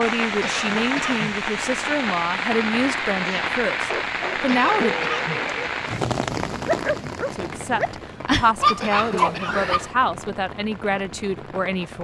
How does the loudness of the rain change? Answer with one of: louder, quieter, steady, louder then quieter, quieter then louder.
quieter.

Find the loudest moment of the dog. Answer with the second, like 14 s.
9 s.